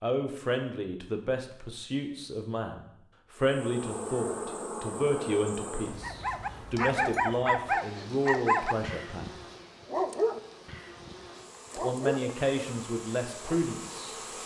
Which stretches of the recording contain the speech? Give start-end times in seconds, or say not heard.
0.0-9.3, 11.8-14.2.